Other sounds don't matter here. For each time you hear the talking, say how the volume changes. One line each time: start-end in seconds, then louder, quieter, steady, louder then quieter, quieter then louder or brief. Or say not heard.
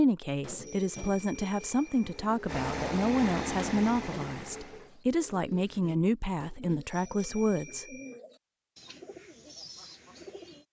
0.0-8.0 steady.